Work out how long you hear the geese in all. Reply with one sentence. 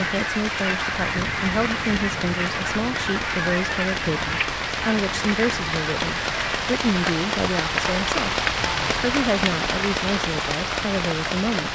The geese can be heard for 7 seconds in total.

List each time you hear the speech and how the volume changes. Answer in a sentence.
You can hear the speech from 0.0 to 11.7 s, at a steady volume.